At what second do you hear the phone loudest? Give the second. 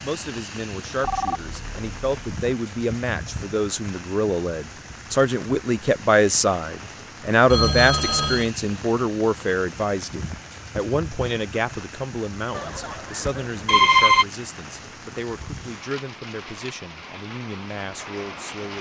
14 s.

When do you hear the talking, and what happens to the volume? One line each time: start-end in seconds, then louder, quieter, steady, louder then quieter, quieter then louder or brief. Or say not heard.
0.0-18.7 louder then quieter.